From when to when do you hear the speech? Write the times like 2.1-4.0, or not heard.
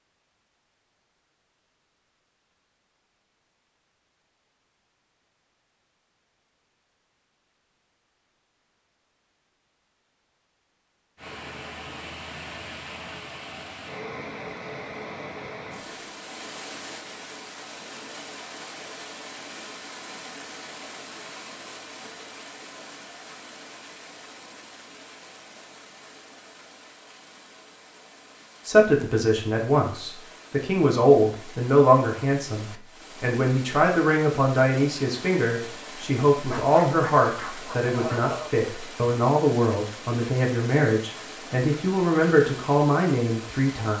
28.6-43.9.